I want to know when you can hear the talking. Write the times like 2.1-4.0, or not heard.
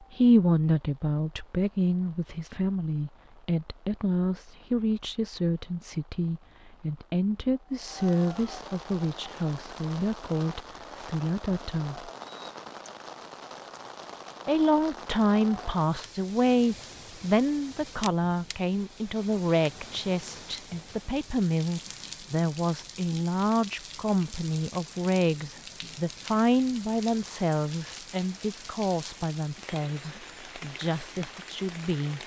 0.0-12.1, 14.4-32.2.